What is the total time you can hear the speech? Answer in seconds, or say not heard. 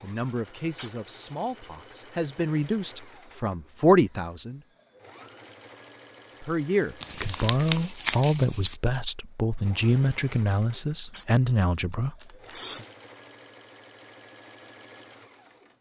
10 s.